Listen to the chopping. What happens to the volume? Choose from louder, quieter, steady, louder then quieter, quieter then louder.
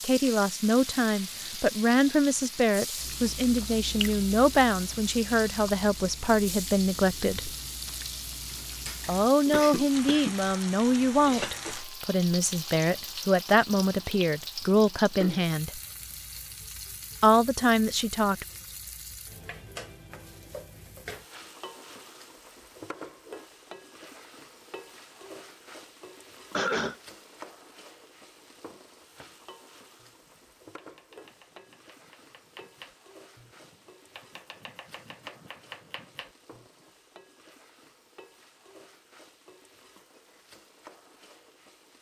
louder.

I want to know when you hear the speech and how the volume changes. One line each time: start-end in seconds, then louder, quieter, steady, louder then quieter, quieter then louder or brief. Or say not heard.
0.0-7.5 steady
9.1-15.8 steady
17.2-18.4 brief.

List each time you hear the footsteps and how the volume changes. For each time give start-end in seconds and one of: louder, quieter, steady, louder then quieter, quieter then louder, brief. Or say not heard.
not heard.